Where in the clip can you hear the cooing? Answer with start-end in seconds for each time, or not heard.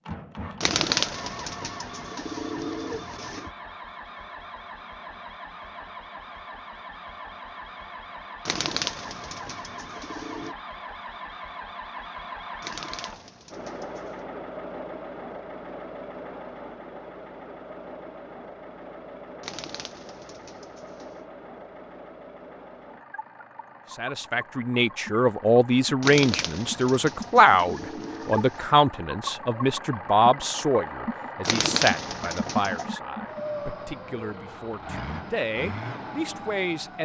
0.6-3.5, 8.4-10.6, 12.6-14.2, 19.4-21.2, 26.0-28.7, 31.4-32.9.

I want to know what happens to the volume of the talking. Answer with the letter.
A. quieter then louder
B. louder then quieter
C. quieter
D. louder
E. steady
C.